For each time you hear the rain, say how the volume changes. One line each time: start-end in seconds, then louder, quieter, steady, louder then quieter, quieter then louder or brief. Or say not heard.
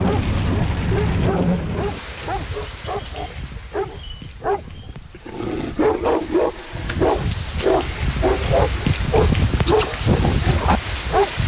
0.0-11.4 quieter then louder.